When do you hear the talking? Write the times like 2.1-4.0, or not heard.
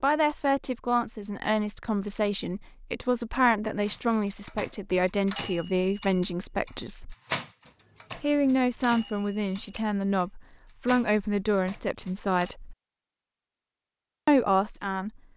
0.0-7.2, 8.2-12.8, 14.2-15.2.